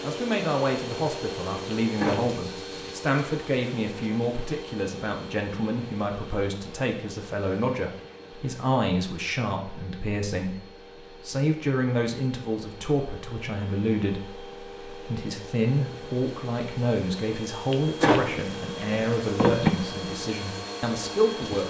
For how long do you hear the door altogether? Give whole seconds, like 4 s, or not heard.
3 s.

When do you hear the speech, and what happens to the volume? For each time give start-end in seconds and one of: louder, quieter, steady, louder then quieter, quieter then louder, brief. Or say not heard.
0.0-21.6 steady.